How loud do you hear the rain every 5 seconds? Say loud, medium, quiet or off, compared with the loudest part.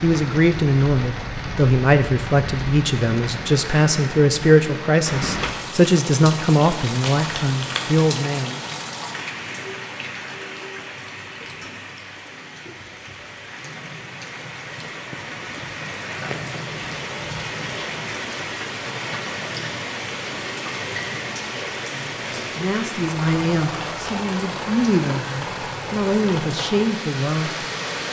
loud, loud, medium, loud, loud, loud.